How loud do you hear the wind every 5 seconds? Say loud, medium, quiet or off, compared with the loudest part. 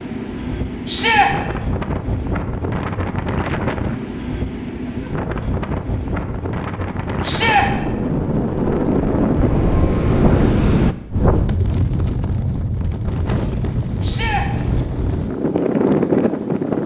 medium, loud, loud, loud.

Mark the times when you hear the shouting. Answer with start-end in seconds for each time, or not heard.
0.8-1.3, 7.2-7.7, 14.0-14.4.